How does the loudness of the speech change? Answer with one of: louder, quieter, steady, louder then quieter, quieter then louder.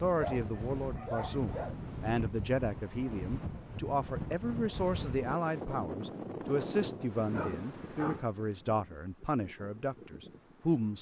steady.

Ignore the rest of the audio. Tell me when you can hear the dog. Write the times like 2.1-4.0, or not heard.
0.1-1.8, 7.2-8.6.